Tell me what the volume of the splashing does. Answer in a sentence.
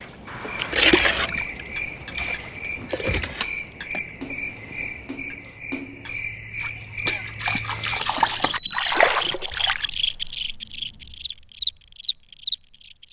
The loudness of the splashing goes down, then up.